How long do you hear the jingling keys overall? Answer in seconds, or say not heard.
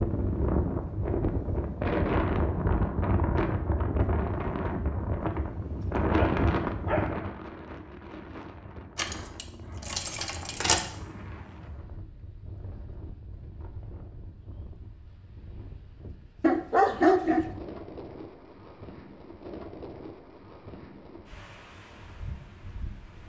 2 s.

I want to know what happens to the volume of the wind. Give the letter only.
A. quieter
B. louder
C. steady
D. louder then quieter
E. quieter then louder
A.